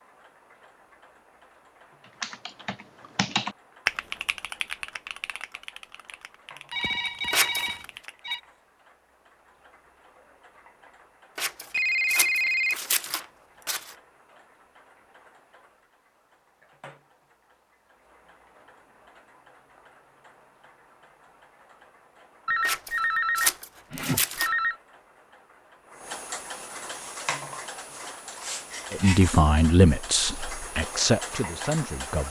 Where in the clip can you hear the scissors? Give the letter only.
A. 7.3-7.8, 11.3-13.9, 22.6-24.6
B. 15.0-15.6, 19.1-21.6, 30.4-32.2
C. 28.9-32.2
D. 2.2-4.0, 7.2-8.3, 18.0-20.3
A.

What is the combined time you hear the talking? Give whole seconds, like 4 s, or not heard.
3 s.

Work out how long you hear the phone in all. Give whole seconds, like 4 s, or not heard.
5 s.